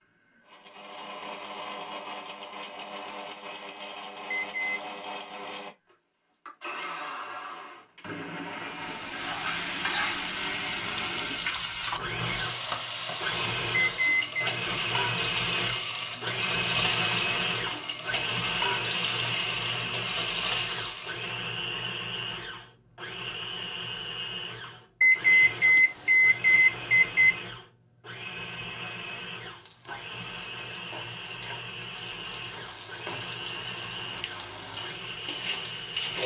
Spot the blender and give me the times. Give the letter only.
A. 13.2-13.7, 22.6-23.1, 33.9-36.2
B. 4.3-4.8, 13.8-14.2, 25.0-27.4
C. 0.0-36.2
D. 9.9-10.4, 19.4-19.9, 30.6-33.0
C.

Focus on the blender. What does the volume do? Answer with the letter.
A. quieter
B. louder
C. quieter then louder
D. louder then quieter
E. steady
D.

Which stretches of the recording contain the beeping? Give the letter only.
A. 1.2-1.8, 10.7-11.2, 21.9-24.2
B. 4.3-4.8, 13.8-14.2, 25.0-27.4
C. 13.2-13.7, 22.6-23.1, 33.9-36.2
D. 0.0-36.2
B.